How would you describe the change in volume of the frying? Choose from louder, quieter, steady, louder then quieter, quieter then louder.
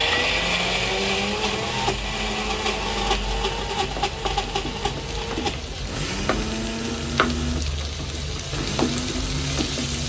louder.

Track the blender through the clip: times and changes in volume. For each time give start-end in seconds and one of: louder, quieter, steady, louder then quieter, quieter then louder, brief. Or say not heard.
0.0-10.0 quieter.